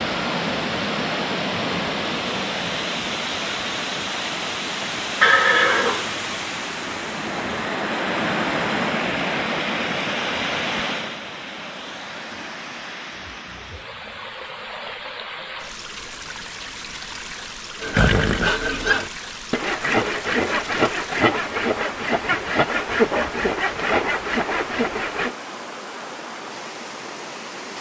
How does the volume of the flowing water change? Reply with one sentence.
The volume of the flowing water goes down.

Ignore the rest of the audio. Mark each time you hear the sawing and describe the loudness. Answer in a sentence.
The sawing can be heard from 17.8 to 25.4 s, at a steady volume.